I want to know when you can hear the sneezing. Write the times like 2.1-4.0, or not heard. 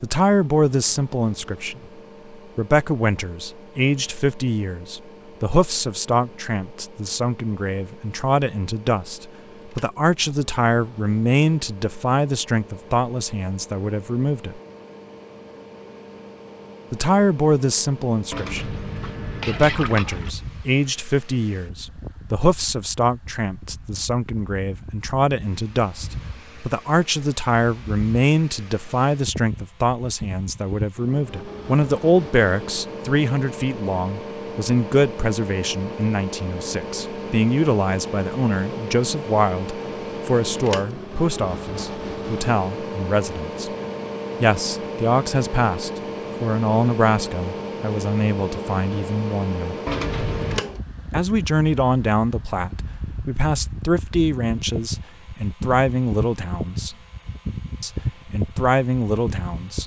not heard.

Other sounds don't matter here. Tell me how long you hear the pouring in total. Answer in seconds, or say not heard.
3 s.